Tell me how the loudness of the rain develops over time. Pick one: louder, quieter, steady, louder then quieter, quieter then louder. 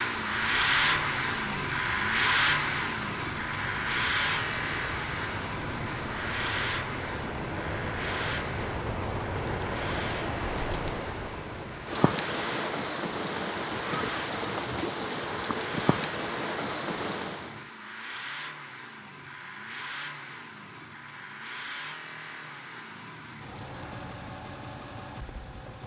louder.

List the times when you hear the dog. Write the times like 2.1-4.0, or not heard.
not heard.